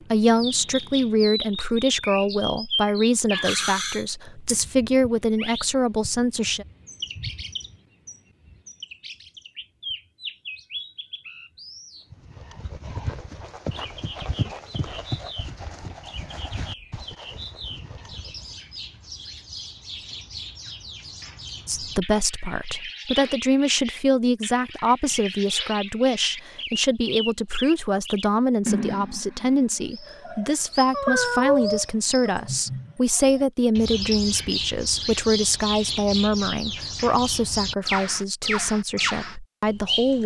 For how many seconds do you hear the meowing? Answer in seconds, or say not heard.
3 s.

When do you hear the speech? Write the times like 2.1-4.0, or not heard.
0.1-6.7, 21.6-40.2.